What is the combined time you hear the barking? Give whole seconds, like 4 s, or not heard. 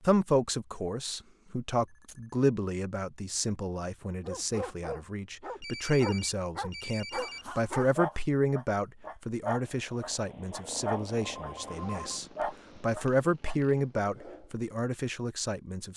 10 s.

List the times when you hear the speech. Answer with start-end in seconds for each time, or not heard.
0.0-15.9.